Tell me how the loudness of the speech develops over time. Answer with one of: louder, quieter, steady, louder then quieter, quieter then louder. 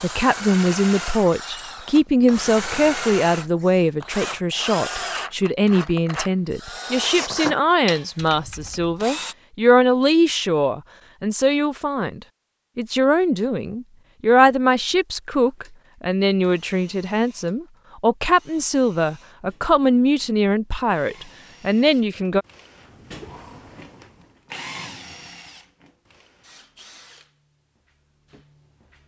steady.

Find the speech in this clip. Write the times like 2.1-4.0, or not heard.
0.0-22.4.